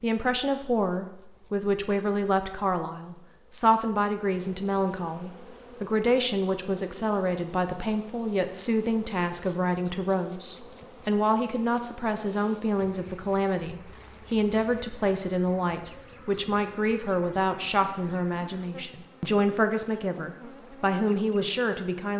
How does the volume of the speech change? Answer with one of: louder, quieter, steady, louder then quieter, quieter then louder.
steady.